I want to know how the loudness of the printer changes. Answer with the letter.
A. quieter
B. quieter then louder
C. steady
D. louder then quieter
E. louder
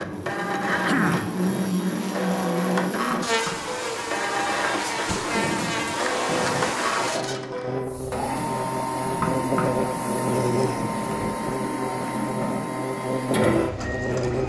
C.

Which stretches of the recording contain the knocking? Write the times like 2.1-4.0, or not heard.
3.0-3.7, 9.1-9.8.